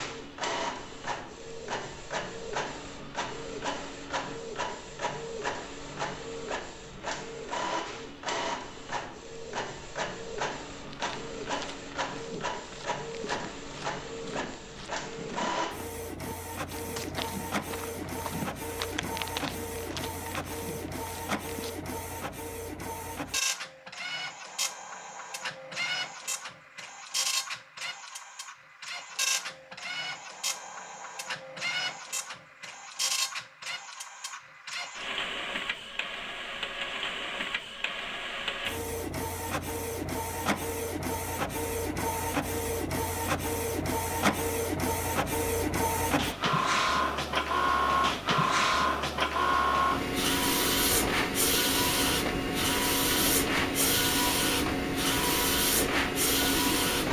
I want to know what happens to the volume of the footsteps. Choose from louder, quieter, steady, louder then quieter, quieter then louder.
louder then quieter.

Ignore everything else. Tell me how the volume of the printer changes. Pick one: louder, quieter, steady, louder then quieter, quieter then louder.
louder.